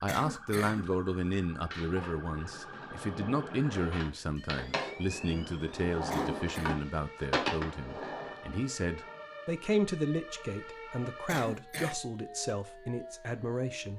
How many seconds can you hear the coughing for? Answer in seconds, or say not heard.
2 s.